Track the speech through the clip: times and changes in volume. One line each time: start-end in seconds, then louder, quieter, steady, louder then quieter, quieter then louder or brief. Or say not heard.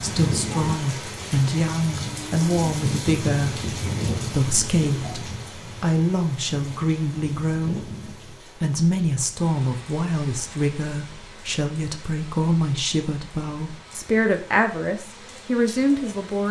0.0-16.4 steady.